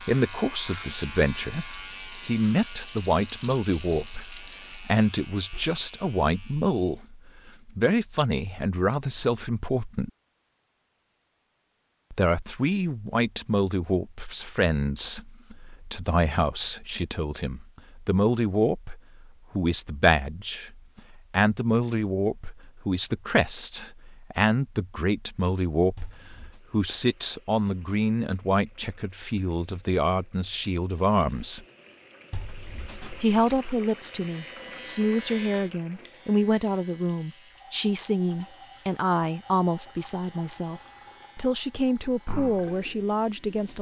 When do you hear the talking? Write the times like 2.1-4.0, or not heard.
0.0-10.1, 12.1-26.1, 26.7-31.6, 33.2-43.7.